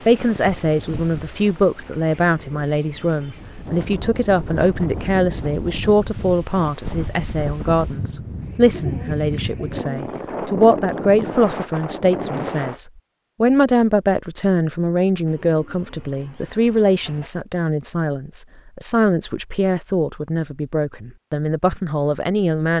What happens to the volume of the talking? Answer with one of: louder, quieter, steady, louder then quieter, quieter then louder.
steady.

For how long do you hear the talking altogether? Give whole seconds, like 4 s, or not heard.
23 s.